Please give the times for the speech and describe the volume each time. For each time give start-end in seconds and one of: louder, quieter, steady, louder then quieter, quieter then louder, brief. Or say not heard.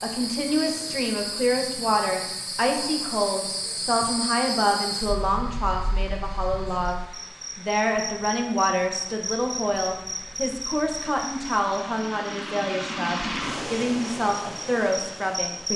0.0-15.7 steady.